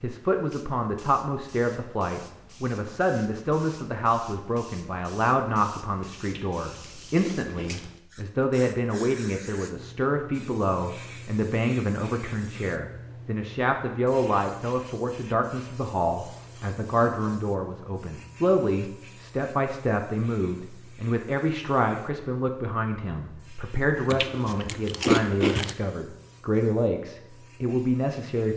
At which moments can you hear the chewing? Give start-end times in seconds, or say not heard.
6.2-7.9, 24.1-25.8.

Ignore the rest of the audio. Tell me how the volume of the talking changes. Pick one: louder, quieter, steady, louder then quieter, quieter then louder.
steady.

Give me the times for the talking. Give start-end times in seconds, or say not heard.
0.0-28.5.